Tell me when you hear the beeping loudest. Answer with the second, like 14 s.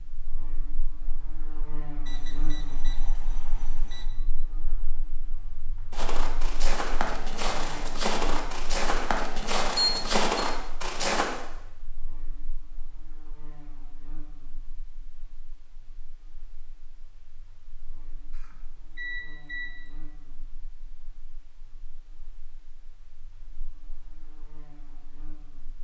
10 s.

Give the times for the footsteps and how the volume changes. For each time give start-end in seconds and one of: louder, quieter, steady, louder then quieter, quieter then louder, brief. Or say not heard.
5.9-11.3 louder.